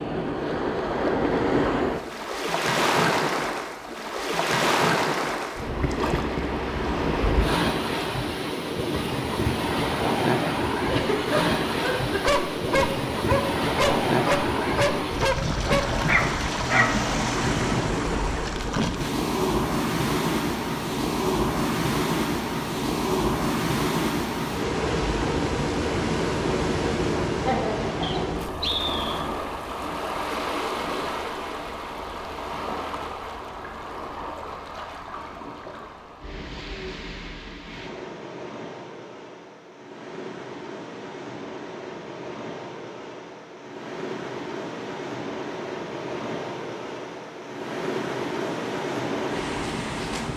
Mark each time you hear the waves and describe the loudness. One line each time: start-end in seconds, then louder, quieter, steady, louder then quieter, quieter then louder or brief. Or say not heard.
0.0-50.3 quieter.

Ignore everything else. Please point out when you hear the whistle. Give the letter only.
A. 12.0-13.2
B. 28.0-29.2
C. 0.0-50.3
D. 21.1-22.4
B.